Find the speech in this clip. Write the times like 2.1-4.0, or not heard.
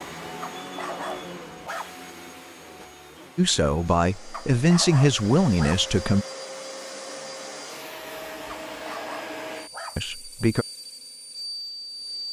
3.4-6.2, 9.9-10.7.